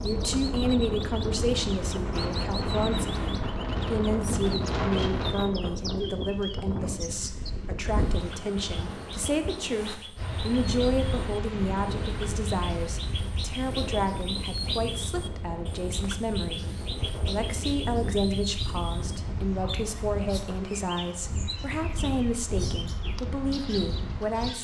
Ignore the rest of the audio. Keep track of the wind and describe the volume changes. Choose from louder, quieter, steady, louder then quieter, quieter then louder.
quieter.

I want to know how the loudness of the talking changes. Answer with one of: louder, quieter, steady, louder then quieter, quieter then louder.
steady.